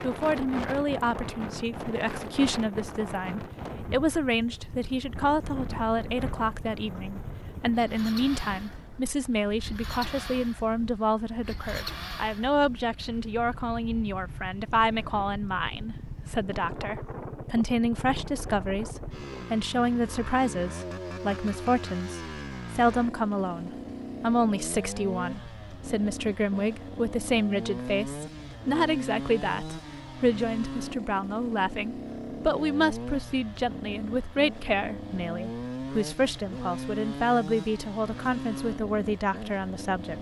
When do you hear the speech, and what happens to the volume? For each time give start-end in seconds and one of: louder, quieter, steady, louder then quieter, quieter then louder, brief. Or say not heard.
0.0-40.1 steady.